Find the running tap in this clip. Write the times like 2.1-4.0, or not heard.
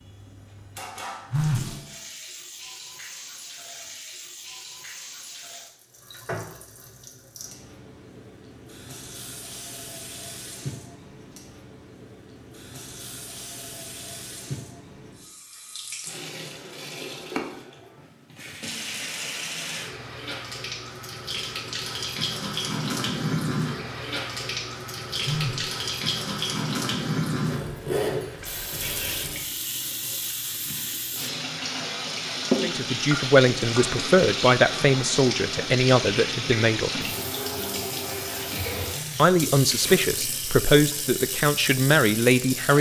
0.0-42.7.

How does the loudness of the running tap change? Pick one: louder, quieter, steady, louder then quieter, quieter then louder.
louder.